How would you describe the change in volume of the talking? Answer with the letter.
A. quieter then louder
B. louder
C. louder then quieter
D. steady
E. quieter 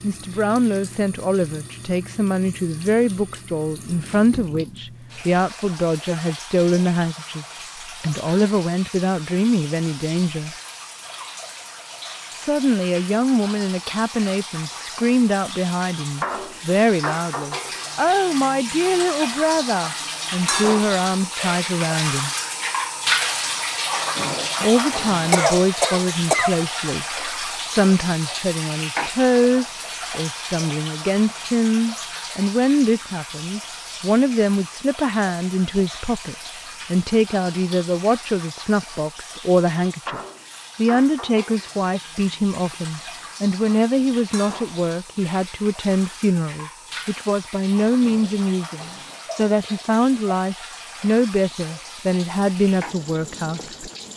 D.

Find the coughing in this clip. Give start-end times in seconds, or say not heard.
24.6-26.7.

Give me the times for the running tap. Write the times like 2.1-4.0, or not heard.
0.0-54.1.